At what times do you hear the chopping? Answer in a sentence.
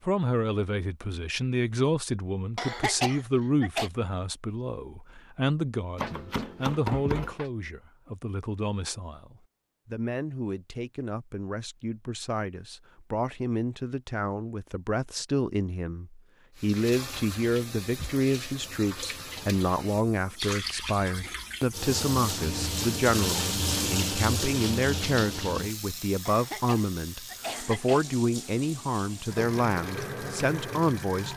You can hear the chopping from 6.0 to 7.5 s.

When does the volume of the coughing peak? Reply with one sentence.
The volume of the coughing peaks at 3 seconds.